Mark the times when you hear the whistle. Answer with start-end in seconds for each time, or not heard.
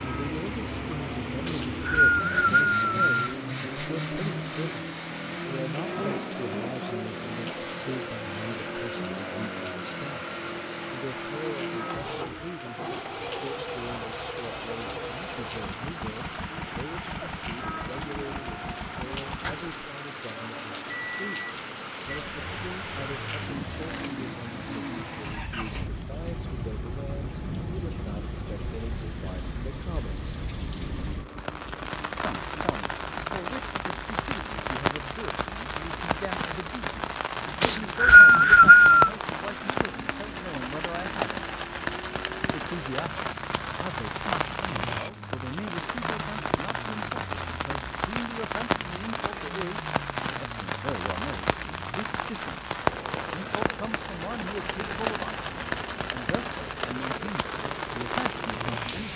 1.4-3.4, 37.6-39.1.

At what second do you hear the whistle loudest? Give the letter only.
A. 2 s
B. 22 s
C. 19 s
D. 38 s
D.